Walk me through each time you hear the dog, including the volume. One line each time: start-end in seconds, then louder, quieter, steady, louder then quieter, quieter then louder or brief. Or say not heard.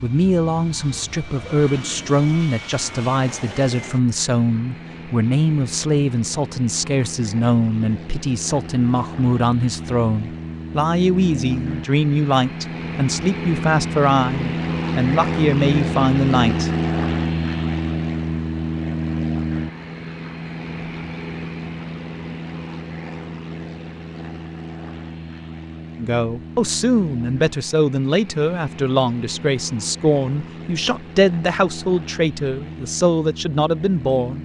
not heard.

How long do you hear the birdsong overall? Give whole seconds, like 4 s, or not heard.
not heard.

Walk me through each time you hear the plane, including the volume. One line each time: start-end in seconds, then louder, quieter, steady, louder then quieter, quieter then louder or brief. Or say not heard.
0.0-34.3 louder then quieter.